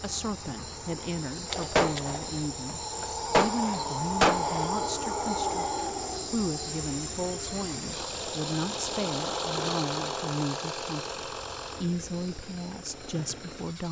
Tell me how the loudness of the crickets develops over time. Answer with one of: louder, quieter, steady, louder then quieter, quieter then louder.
louder then quieter.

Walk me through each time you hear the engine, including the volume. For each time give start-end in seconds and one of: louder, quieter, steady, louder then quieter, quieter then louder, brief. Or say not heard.
0.0-13.8 louder then quieter.